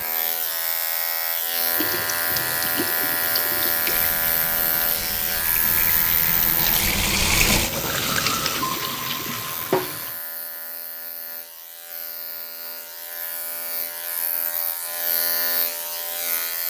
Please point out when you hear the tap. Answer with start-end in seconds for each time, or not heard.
1.6-10.2.